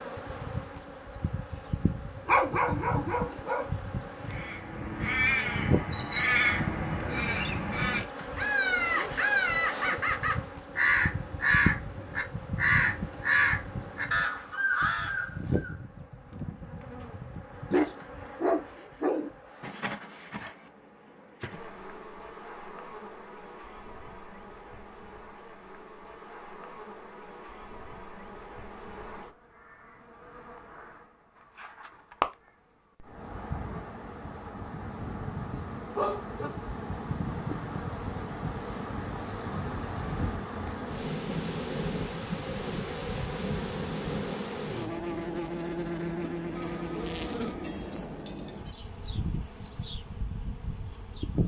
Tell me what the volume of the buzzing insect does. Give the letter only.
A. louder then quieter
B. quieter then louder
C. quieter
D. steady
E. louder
B.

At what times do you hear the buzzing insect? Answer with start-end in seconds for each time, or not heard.
0.0-51.4.